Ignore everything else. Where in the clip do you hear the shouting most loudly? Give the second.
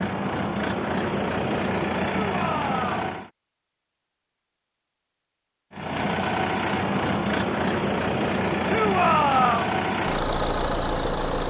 9 s.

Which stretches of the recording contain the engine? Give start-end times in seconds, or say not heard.
0.0-3.3, 5.7-11.4.